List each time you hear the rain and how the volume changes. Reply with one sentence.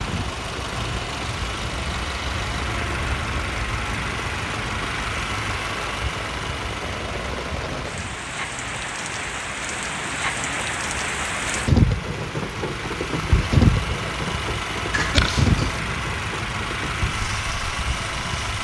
The rain can be heard from 0.0 to 18.5 s, getting louder then quieter.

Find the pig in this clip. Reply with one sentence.
The pig can be heard from 14.9 to 15.8 s.